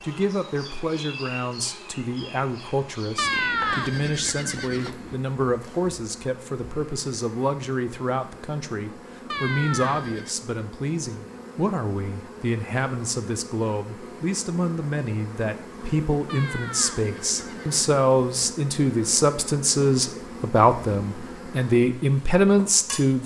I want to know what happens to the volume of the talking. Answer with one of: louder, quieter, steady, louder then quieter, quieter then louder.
louder.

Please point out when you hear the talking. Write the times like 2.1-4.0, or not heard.
0.0-23.2.